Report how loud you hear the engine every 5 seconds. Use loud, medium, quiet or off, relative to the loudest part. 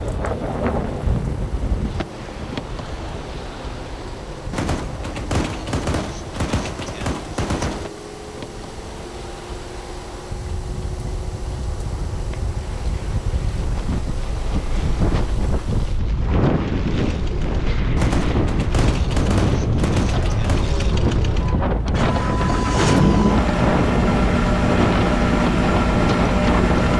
quiet, quiet, quiet, quiet, loud, loud.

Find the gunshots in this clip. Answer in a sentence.
The gunshots can be heard from 4.5 to 7.9 s and from 17.9 to 20.9 s.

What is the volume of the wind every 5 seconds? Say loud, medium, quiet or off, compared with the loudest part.
medium, quiet, medium, loud, loud, loud.